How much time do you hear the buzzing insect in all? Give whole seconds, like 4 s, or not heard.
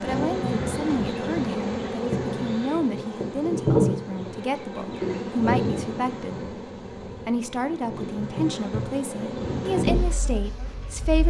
11 s.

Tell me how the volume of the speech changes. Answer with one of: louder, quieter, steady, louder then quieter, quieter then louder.
steady.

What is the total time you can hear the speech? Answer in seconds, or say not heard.
10 s.